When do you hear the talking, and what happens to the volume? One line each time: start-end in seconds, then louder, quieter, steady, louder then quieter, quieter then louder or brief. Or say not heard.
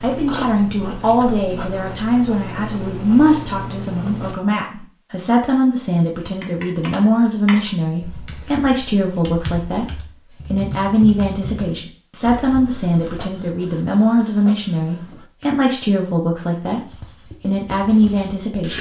0.0-18.7 steady.